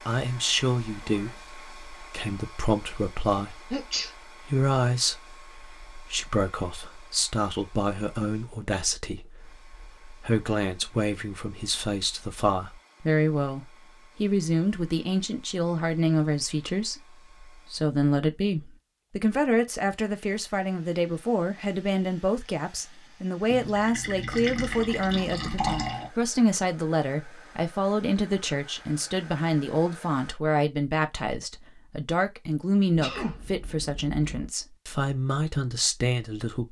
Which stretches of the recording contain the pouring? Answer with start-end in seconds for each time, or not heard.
23.5-26.1.